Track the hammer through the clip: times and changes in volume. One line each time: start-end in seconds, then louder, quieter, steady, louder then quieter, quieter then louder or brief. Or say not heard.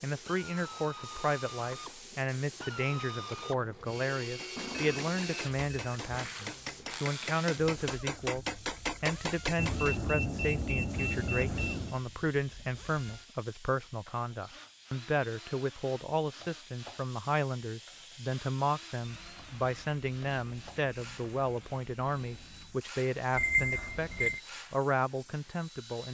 4.2-10.1 louder.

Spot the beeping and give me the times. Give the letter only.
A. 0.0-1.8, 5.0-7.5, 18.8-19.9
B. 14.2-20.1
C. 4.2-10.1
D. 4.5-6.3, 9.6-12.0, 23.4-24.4
D.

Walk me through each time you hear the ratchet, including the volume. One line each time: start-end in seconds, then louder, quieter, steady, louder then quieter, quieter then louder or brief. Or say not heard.
not heard.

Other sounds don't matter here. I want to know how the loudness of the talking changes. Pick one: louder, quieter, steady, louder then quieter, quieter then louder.
steady.